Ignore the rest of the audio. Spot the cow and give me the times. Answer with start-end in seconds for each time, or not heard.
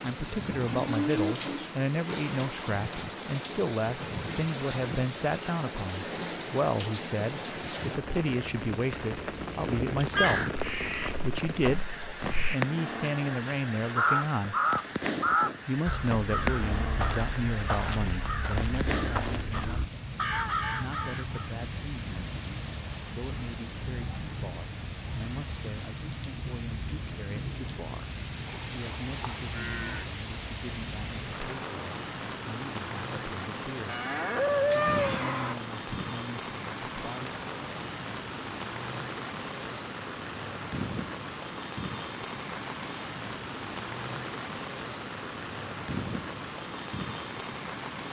0.8-1.4, 28.4-30.1, 33.9-35.5.